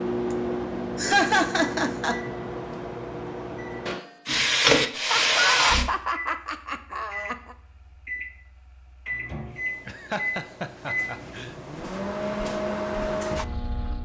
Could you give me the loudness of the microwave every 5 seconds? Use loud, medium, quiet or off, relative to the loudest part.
loud, medium, loud.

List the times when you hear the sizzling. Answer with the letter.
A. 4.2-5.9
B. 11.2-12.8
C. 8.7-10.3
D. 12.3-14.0
A.